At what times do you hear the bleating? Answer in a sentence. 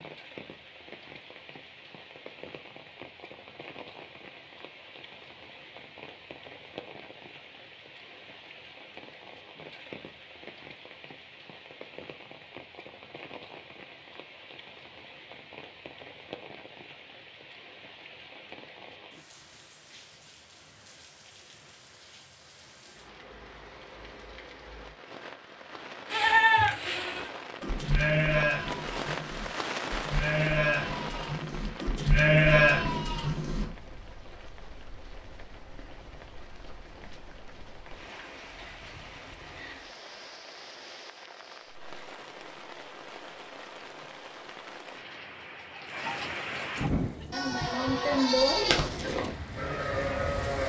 You can hear the bleating from 26.1 to 33.6 s and from 46.9 to 50.6 s.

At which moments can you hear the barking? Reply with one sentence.
You can't hear the barking here.